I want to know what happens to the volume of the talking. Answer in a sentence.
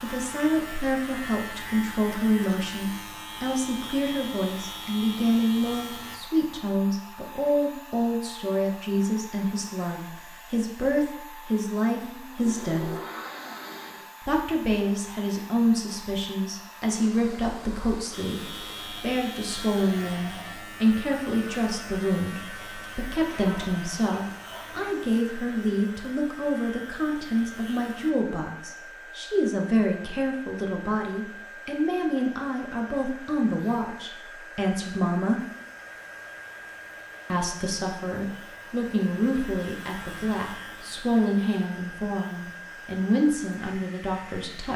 The volume of the talking stays about the same.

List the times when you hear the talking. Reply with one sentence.
You can hear the talking from 0.0 to 12.9 s, from 14.2 to 35.4 s and from 37.3 to 44.7 s.